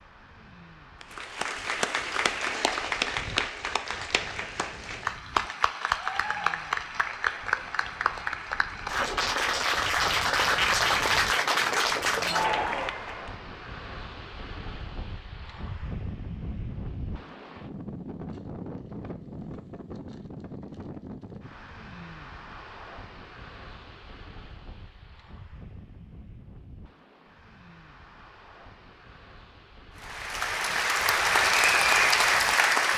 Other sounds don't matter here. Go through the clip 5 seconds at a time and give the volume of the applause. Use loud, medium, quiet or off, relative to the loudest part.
medium, medium, loud, off, off, off, loud.